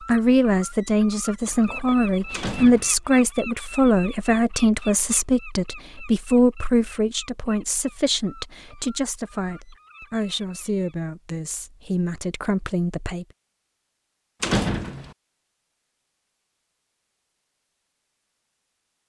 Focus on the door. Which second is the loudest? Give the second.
15 s.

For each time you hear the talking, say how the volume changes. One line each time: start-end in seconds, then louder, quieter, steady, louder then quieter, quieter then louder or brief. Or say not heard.
0.1-13.2 quieter.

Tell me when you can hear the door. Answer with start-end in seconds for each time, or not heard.
1.4-2.9, 14.4-15.2.